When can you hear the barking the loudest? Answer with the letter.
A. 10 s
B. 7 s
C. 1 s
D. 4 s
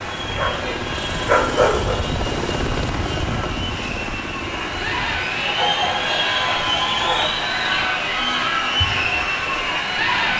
C.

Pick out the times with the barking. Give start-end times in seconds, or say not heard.
0.2-2.0, 5.5-7.5.